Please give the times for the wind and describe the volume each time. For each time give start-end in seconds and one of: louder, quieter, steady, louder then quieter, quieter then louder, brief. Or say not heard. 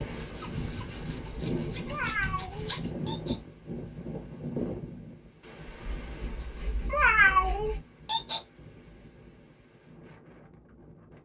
0.0-11.2 quieter.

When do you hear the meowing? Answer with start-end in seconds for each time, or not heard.
1.9-3.4, 6.9-8.4.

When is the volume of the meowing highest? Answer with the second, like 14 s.
7 s.